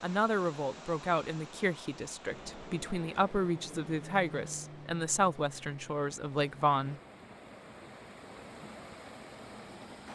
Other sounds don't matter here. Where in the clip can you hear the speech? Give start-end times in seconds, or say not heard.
0.0-7.0.